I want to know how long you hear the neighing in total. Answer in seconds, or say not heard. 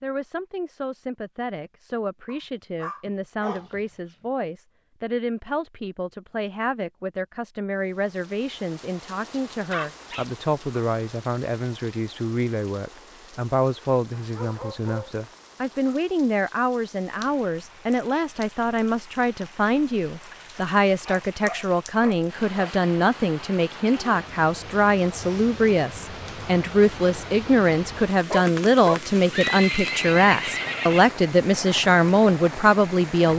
2 s.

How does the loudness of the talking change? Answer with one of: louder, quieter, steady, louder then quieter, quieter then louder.
louder.